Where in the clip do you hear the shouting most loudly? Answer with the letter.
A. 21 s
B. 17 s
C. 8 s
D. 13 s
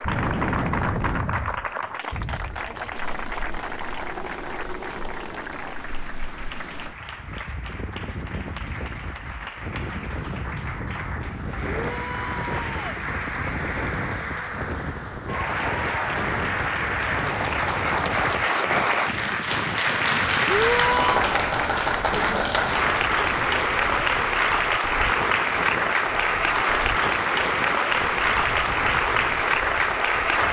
A.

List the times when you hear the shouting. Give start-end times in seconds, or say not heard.
11.8-13.0, 20.4-21.3.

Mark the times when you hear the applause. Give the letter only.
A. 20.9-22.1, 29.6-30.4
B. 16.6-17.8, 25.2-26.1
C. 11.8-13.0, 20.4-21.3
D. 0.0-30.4
D.